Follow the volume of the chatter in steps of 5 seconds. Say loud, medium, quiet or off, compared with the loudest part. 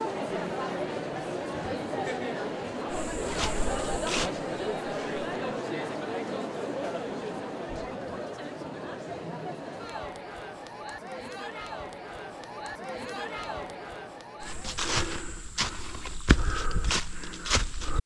loud, loud, medium, off.